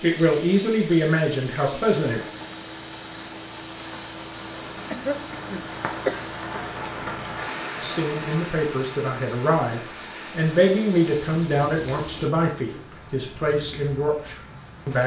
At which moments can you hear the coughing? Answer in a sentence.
You can hear the coughing from 4.9 to 6.2 s.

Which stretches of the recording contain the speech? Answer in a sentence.
The speech can be heard from 0.0 to 2.2 s and from 7.8 to 15.0 s.